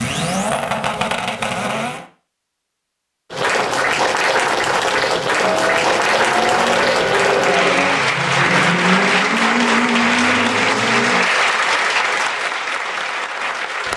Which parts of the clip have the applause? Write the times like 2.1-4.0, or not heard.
3.3-13.9.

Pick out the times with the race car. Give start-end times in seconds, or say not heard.
0.0-2.0, 5.2-11.3.